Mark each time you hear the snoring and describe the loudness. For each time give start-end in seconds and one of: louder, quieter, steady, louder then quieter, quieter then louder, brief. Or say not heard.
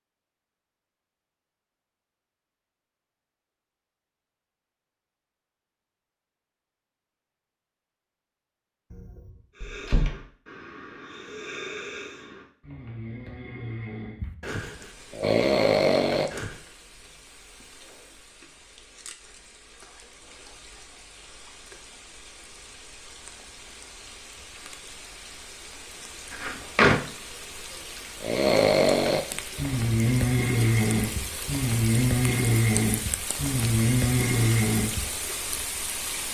9.6-16.6 louder
28.2-35.1 steady.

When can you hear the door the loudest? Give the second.
27 s.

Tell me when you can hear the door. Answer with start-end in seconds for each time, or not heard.
8.9-10.2, 26.3-27.0.